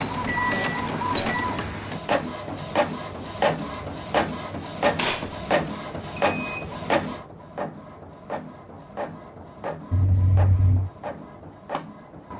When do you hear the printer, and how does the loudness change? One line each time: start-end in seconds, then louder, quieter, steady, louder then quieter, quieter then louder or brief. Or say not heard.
0.0-12.3 quieter.